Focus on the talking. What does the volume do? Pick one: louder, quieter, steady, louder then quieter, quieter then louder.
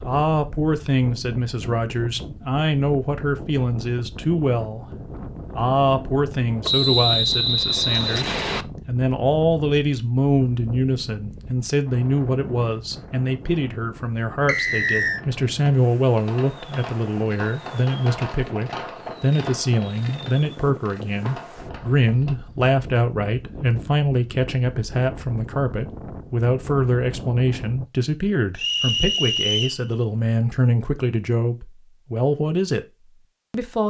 steady.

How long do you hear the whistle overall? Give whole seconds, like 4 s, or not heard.
4 s.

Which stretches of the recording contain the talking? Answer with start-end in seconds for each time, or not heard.
0.0-33.8.